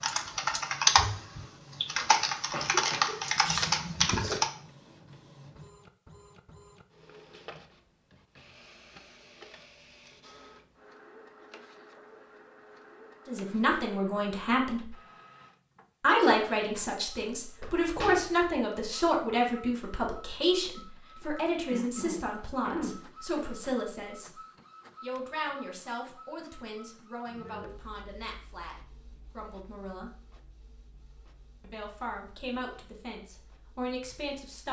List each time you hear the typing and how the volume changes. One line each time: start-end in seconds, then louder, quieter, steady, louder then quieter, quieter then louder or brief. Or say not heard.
0.0-4.5 quieter then louder.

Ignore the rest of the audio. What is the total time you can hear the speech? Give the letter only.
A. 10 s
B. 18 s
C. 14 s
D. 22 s
B.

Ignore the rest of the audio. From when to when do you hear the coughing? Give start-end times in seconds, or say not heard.
2.5-3.1, 21.7-23.4.